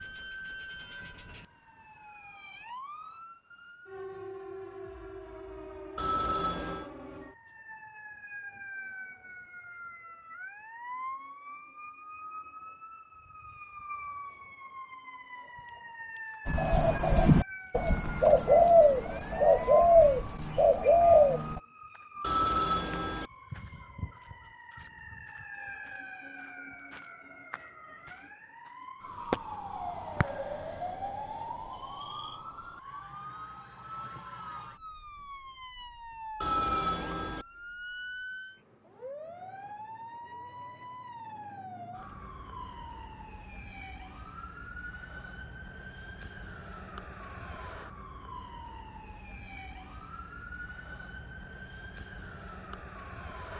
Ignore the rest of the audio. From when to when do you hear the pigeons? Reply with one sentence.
You can hear the pigeons from 16.4 to 21.6 s.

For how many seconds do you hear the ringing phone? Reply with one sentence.
You can hear the ringing phone for 3 seconds altogether.